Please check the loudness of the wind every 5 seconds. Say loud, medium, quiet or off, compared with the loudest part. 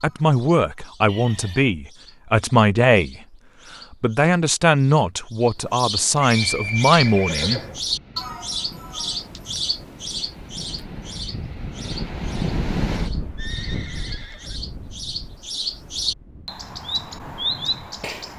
off, quiet, loud, quiet.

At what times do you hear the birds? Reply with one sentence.
You can hear the birds from 0.0 to 18.3 s.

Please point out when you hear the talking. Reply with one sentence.
You can hear the talking from 0.0 to 3.2 s and from 3.9 to 7.6 s.